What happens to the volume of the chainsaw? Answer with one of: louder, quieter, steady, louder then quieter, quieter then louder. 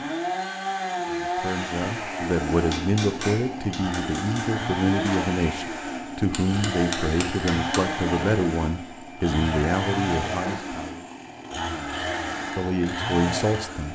steady.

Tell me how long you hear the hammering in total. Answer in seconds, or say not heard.
4 s.